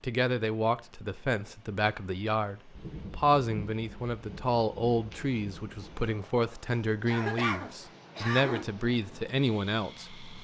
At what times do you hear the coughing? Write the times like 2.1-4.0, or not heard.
7.0-8.7.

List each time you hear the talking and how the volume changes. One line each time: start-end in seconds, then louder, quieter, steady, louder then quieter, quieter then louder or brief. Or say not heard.
0.0-10.2 steady.